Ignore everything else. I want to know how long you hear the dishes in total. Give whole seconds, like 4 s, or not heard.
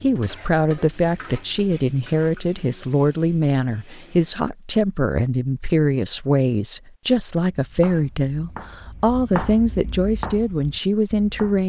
not heard.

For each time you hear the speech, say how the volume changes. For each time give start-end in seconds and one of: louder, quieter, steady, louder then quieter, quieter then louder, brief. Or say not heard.
0.0-11.6 steady.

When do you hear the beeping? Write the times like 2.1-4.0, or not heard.
not heard.